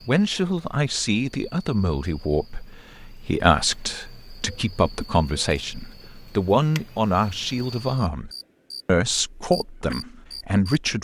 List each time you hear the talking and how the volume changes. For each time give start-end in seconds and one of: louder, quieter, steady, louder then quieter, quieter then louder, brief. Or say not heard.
0.1-11.0 steady.